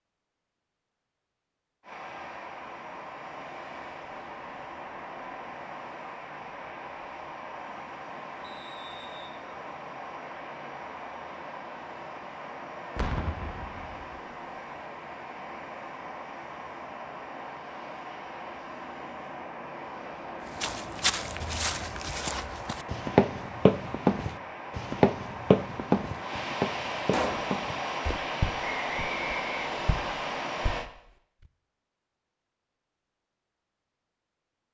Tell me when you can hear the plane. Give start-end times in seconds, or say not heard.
1.8-30.9.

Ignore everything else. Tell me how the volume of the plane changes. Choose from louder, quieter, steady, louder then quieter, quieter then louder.
louder.